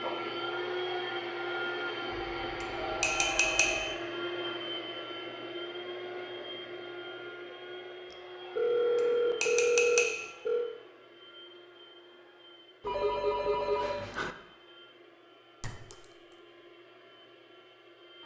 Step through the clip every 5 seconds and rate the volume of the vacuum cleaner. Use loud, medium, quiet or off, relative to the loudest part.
loud, medium, quiet, quiet.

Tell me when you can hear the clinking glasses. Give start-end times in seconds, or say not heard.
2.6-4.0, 8.9-10.3, 15.6-16.4.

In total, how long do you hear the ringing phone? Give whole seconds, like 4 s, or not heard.
6 s.